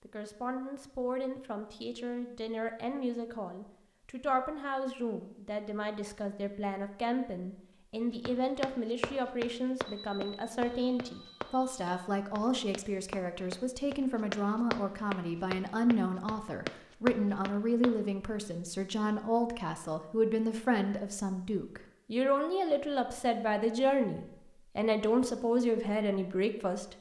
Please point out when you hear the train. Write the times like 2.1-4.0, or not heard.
not heard.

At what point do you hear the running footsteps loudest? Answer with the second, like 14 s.
17 s.